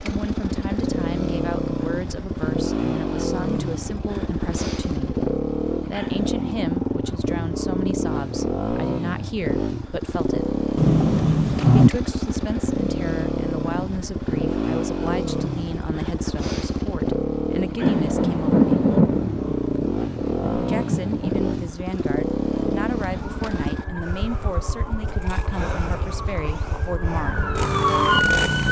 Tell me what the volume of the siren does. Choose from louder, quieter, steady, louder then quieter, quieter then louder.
louder.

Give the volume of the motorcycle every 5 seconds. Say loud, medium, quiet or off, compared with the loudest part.
loud, loud, loud, loud, loud, medium.